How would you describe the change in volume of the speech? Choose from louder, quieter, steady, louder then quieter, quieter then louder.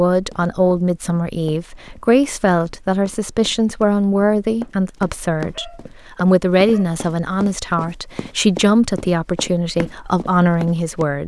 steady.